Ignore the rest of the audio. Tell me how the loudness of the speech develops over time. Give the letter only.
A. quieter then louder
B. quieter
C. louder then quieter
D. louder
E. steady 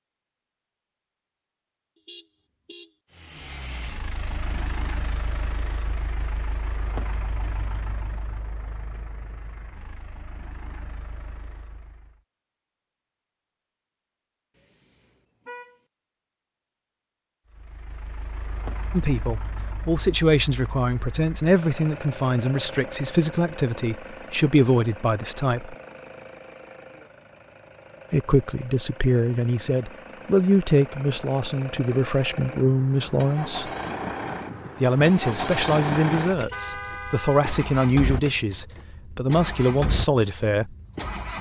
E.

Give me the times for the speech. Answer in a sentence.
The speech can be heard from 18.9 to 25.8 s, from 28.1 to 33.7 s and from 34.8 to 40.8 s.